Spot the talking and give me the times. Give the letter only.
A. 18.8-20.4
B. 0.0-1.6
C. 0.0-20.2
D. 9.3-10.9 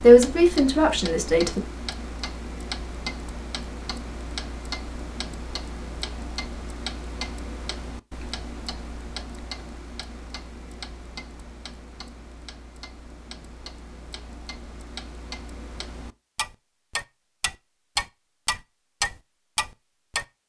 B.